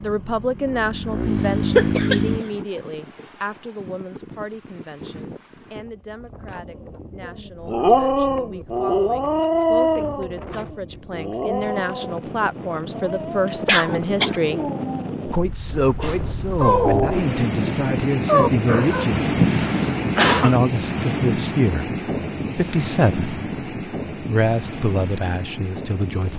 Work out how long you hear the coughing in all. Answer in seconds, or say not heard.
3 s.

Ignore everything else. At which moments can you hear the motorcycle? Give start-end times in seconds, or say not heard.
0.0-2.5.